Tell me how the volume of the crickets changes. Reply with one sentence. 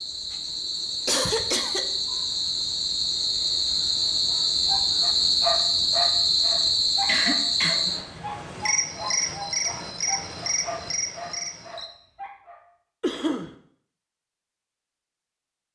The loudness of the crickets goes up, then down.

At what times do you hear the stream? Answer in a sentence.
The stream can't be heard in this clip.